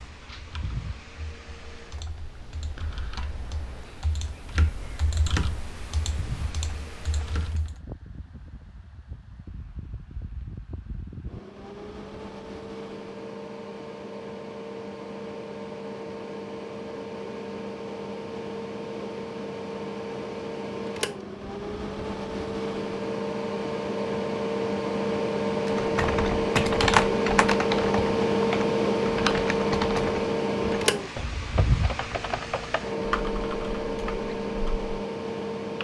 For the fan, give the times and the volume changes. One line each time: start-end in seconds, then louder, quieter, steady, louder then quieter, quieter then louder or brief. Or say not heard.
0.0-35.7 louder.